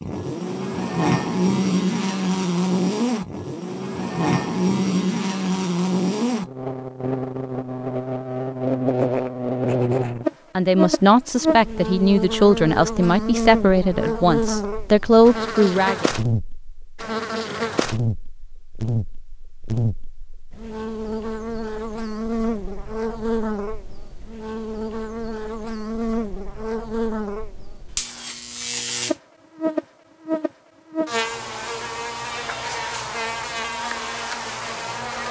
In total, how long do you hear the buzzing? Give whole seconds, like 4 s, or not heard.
35 s.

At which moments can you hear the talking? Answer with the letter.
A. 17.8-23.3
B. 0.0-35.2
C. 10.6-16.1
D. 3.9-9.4
C.